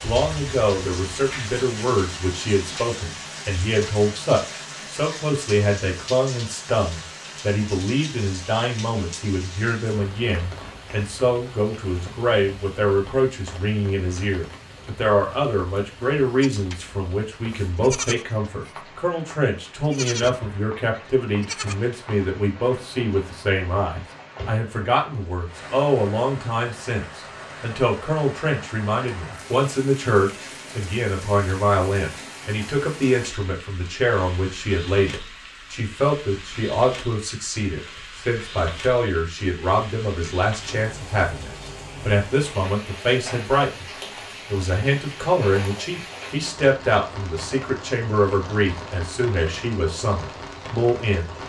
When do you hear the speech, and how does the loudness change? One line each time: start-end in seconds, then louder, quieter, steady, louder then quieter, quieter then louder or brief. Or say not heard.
0.0-51.3 steady.